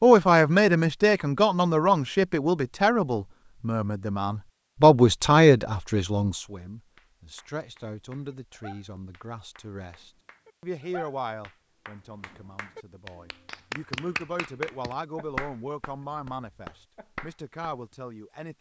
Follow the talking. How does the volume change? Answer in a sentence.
The loudness of the talking goes down.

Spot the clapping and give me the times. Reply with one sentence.
The clapping can be heard from 7.0 to 17.9 s.